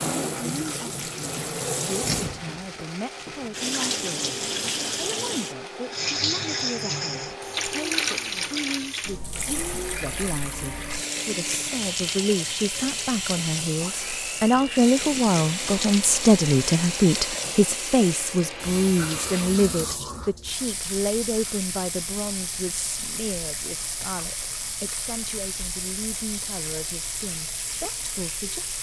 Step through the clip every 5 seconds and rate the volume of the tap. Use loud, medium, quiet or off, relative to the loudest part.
loud, loud, loud, loud, medium, medium.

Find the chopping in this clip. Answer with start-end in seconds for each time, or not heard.
not heard.